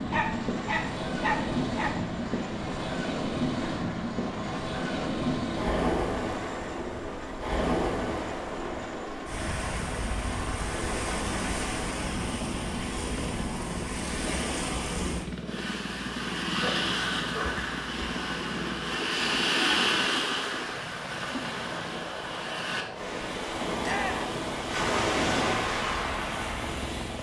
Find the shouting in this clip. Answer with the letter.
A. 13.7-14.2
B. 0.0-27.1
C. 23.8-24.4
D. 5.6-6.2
C.